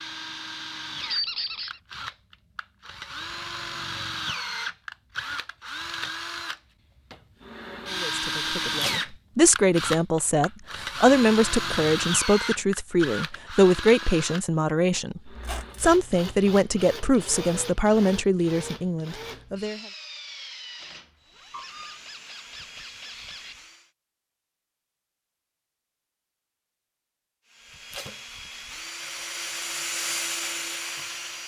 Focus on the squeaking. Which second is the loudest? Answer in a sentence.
The loudest moment of the squeaking is at 1 second.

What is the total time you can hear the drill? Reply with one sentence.
The drill can be heard for 28 seconds in total.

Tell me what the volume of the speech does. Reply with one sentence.
The loudness of the speech stays about the same.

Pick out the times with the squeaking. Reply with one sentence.
The squeaking can be heard from 1.0 to 1.8 s, from 15.3 to 15.8 s and from 21.5 to 23.6 s.